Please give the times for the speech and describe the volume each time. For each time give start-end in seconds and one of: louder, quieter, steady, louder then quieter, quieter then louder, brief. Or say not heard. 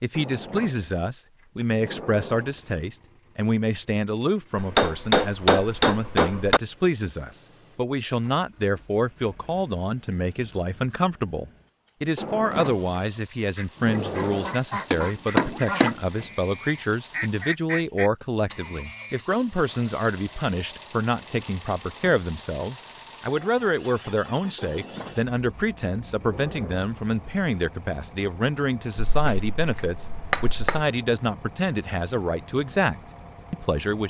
0.0-34.0 steady.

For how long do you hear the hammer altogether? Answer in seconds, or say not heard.
5 s.